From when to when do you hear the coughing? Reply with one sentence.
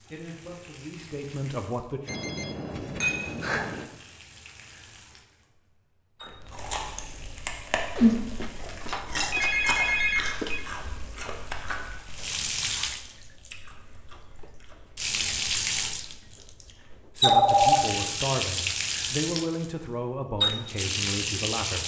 The coughing can't be heard in this clip.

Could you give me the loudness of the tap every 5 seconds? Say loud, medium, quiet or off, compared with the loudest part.
quiet, quiet, medium, loud, loud.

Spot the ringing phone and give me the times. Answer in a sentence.
You can hear the ringing phone from 2.0 to 3.9 s, from 8.0 to 10.7 s and from 17.2 to 17.9 s.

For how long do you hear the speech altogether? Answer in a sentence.
You can hear the speech for 7 seconds altogether.